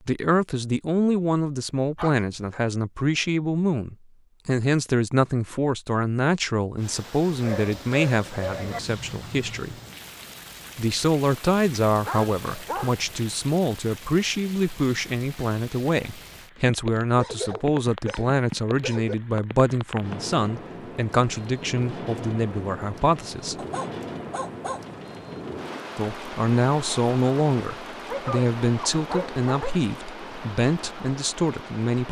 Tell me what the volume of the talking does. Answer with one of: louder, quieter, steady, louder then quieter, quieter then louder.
steady.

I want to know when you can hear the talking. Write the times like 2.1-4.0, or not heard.
0.1-9.8, 10.8-23.6, 25.9-32.0.